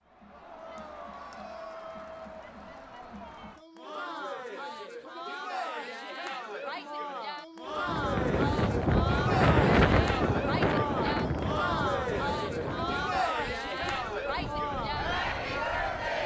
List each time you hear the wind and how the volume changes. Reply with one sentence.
You can hear the wind from 7.7 to 16.2 s, getting quieter.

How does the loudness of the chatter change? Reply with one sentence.
The volume of the chatter goes up.